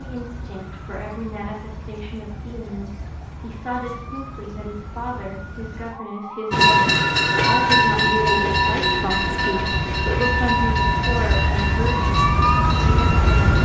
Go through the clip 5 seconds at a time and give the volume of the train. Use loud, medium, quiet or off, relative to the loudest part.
off, loud, medium.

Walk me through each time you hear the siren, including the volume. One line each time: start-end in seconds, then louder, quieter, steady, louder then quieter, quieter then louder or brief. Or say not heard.
0.0-13.5 louder.